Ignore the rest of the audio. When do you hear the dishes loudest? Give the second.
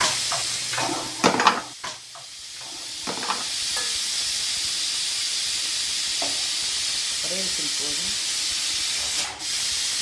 1 s.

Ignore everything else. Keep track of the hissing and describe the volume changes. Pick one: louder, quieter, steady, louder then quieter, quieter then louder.
louder.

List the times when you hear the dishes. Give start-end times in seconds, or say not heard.
0.0-4.0.